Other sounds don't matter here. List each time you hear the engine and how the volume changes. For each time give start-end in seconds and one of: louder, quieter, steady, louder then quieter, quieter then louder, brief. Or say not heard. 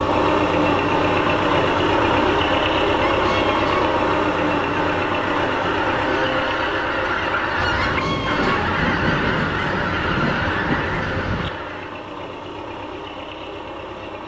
0.0-14.2 quieter.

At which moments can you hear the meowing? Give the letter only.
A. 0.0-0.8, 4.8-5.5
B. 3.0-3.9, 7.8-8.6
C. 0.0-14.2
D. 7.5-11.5
B.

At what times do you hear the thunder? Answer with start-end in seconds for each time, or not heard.
7.5-11.5.